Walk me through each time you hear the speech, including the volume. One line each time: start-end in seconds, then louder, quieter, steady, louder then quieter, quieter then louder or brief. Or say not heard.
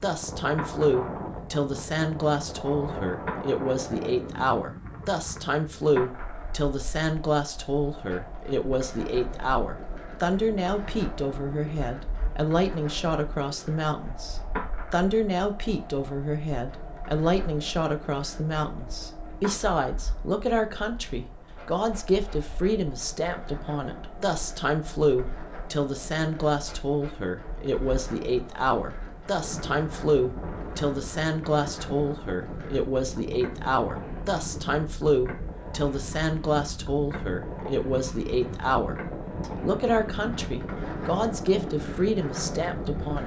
0.0-43.2 steady.